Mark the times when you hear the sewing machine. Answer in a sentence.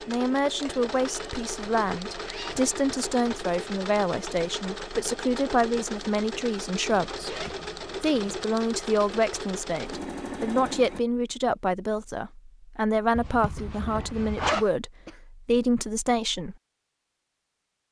You can hear the sewing machine from 0.0 to 11.0 s.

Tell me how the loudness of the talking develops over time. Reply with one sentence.
The loudness of the talking stays about the same.